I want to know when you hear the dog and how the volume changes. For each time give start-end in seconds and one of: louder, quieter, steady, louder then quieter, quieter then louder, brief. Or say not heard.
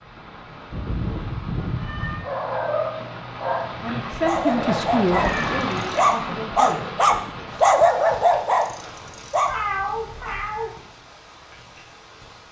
2.2-9.5 louder.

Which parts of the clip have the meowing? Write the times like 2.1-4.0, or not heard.
0.7-2.2, 5.1-5.7, 9.4-10.8.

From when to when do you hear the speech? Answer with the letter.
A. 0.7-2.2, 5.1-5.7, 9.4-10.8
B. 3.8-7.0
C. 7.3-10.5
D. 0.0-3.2
B.